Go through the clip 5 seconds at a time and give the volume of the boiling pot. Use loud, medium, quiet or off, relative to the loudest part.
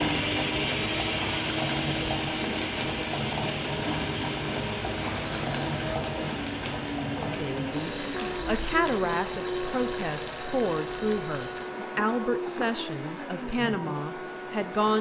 loud, loud, medium.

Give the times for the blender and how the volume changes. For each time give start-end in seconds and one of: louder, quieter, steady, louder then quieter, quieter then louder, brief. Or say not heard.
0.0-14.9 quieter.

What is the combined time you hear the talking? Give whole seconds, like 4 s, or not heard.
8 s.